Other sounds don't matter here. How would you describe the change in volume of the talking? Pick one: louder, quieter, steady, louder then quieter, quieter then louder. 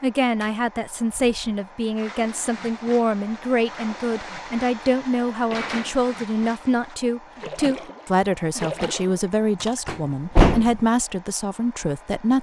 steady.